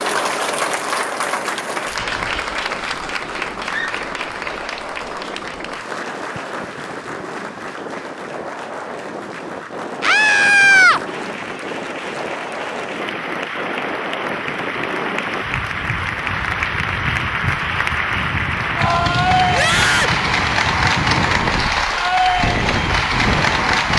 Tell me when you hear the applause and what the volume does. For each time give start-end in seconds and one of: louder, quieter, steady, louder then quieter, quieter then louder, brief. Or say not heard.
0.0-23.9 quieter then louder.